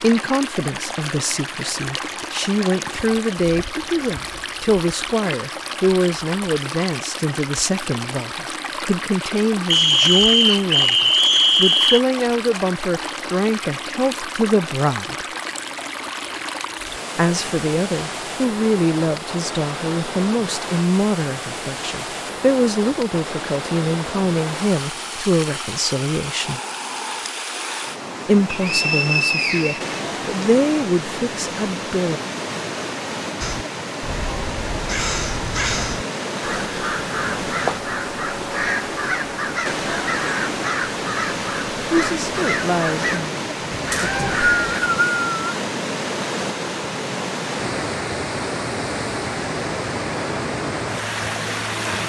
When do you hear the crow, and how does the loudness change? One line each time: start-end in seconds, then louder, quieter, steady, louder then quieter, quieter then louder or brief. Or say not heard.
33.4-44.8 steady.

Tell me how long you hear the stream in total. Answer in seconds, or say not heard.
52 s.